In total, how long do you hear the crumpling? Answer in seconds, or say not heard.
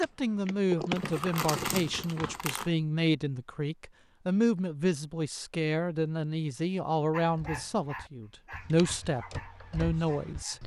2 s.